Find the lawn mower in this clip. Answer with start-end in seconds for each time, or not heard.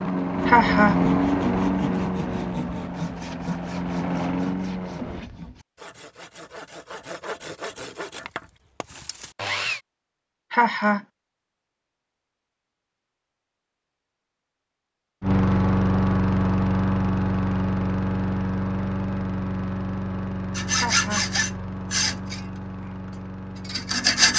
0.0-5.3, 15.2-24.3.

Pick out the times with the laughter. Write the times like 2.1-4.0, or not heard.
0.5-0.9, 10.5-11.1, 20.8-21.2.